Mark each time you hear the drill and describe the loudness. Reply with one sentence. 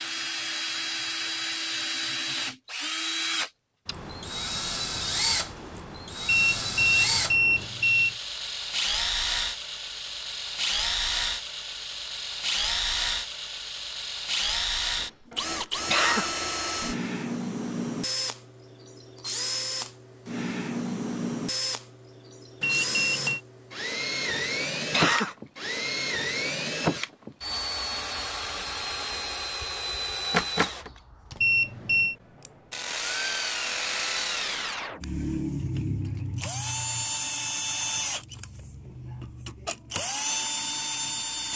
You can hear the drill from 0.0 to 41.5 s, at a steady volume.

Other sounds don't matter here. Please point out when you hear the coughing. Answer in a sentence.
The coughing can be heard from 15.8 to 16.3 s and from 24.9 to 25.4 s.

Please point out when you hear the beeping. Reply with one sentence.
You can hear the beeping from 6.2 to 8.2 s, from 22.6 to 23.4 s and from 31.4 to 32.1 s.